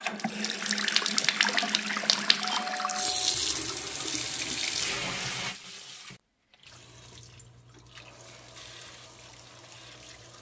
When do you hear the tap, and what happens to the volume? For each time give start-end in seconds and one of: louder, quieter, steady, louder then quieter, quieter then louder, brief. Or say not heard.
0.0-10.3 quieter.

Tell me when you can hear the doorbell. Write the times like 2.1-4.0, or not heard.
2.4-3.4.